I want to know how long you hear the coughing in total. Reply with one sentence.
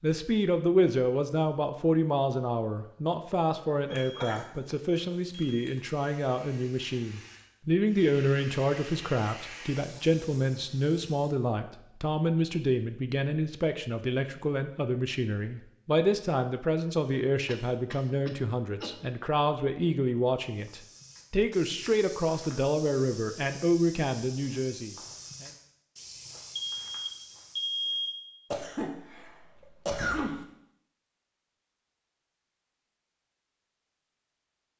The coughing can be heard for 5 seconds in total.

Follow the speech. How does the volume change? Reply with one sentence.
The volume of the speech stays about the same.